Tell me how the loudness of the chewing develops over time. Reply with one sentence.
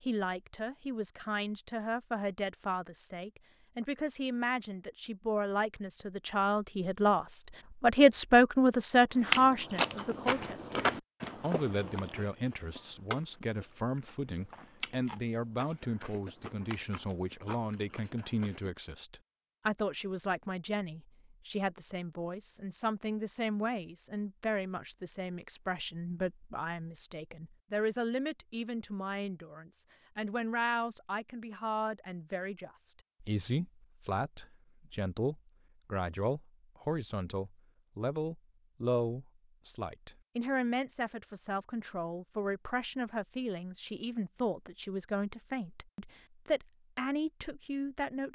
The loudness of the chewing goes down.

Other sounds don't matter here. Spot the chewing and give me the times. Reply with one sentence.
You can hear the chewing from 9.2 to 18.7 s.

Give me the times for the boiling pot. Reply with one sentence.
The boiling pot can't be heard in this clip.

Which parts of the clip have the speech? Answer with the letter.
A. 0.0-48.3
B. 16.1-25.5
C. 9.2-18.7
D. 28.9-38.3
A.